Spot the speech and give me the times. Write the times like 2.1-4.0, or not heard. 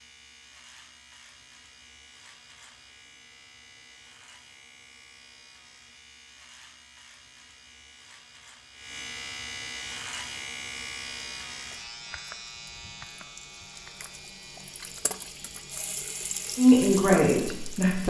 16.6-18.0.